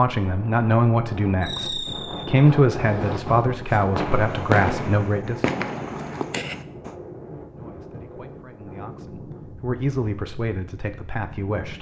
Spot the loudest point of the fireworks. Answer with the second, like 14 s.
5 s.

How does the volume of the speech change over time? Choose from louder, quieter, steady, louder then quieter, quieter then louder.
quieter.